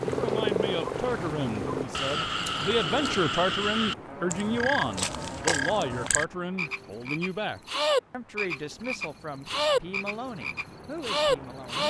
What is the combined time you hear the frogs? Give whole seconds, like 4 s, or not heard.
12 s.